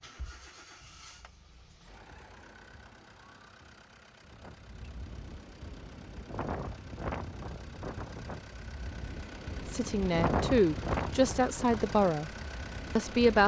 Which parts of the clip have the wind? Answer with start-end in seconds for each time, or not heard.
4.3-13.4.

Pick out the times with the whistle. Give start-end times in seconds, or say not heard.
not heard.